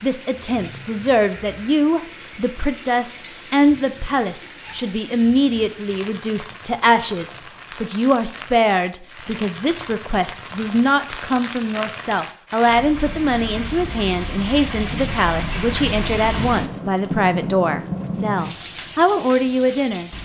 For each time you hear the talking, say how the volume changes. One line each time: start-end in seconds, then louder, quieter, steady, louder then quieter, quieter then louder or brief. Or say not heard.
0.0-20.1 steady.